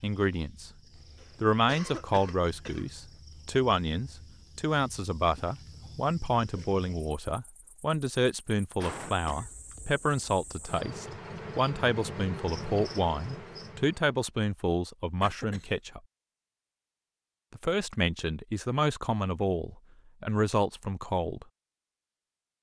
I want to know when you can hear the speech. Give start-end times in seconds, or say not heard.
0.0-0.7, 1.4-16.0, 17.5-21.4.